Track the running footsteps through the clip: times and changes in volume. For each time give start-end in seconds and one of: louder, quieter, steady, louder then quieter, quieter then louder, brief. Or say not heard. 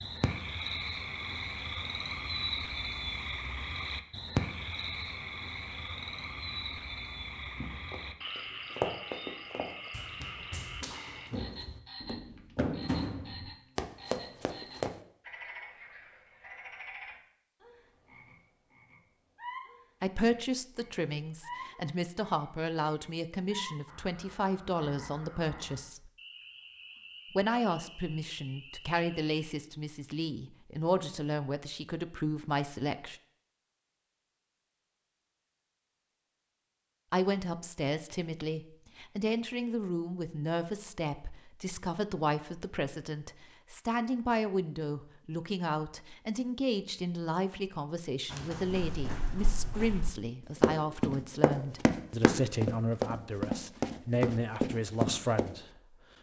7.6-14.9 quieter then louder
48.3-55.5 louder.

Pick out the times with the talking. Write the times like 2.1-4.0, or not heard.
20.0-26.1, 27.3-33.1, 37.1-56.0.